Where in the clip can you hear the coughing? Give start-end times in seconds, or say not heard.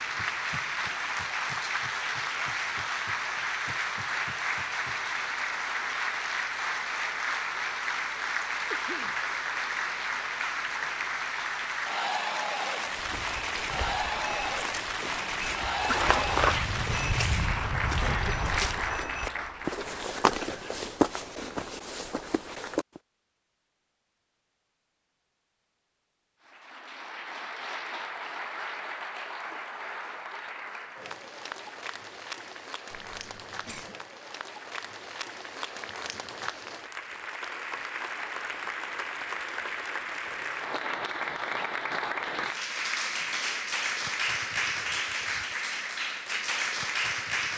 8.7-9.2, 18.0-18.9, 32.9-34.0.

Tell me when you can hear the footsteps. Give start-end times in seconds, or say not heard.
12.8-23.0.